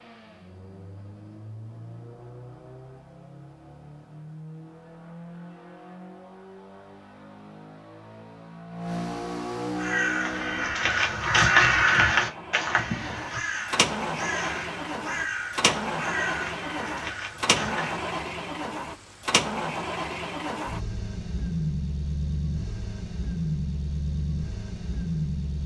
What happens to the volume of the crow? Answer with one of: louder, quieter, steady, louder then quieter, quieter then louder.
quieter.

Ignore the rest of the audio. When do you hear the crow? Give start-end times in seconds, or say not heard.
9.7-18.1.